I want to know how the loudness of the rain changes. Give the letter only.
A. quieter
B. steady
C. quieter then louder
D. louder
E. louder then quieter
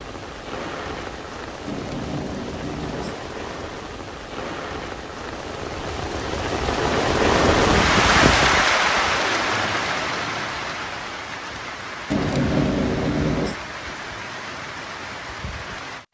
E.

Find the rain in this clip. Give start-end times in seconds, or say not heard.
0.0-16.0.